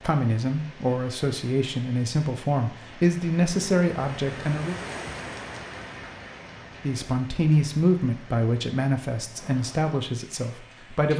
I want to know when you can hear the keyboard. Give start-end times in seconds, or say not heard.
not heard.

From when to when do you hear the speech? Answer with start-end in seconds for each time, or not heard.
0.0-4.8, 6.8-11.1.